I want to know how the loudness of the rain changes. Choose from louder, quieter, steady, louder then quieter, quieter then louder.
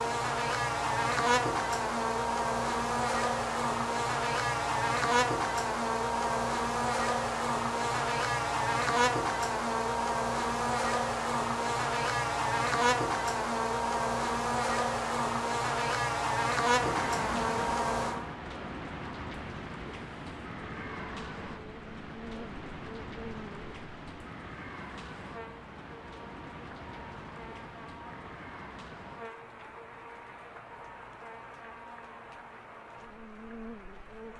quieter.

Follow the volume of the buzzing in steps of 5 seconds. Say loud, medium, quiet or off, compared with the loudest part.
loud, loud, loud, loud, quiet, quiet, quiet.